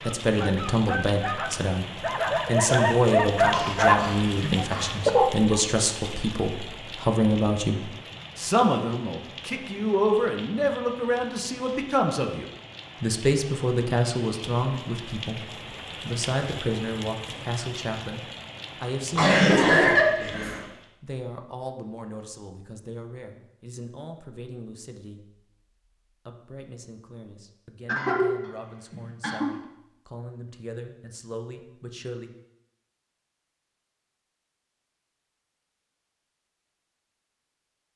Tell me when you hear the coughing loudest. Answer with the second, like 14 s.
20 s.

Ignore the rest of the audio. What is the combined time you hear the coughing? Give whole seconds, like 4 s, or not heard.
4 s.